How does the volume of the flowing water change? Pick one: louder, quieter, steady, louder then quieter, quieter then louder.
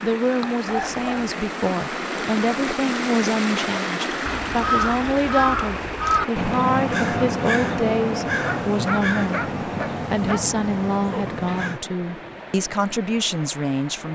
quieter.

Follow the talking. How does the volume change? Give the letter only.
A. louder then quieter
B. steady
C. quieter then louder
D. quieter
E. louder
B.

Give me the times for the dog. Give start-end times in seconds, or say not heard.
0.7-1.4, 8.4-10.4.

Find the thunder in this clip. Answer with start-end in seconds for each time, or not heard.
not heard.